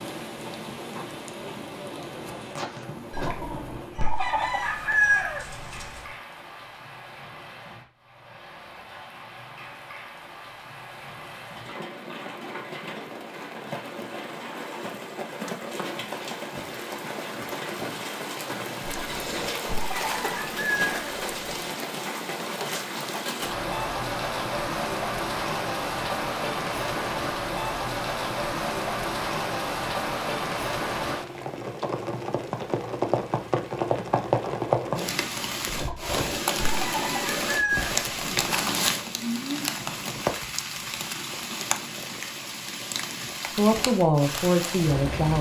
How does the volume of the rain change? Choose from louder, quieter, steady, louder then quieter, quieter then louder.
louder.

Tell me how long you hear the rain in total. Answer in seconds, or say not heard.
45 s.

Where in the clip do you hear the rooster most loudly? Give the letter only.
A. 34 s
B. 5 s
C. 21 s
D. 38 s
B.